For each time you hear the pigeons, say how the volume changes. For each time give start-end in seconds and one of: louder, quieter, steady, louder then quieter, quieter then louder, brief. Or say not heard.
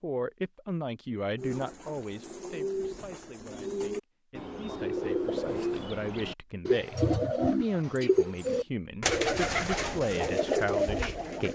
1.4-11.5 louder.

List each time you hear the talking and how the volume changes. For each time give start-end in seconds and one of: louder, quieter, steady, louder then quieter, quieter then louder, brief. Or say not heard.
0.0-11.5 quieter then louder.